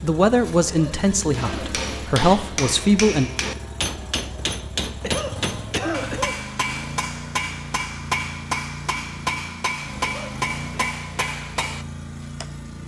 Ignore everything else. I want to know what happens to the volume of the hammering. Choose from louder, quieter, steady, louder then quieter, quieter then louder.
steady.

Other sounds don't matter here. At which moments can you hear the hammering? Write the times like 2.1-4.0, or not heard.
1.3-12.4.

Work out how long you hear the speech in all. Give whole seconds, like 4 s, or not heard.
3 s.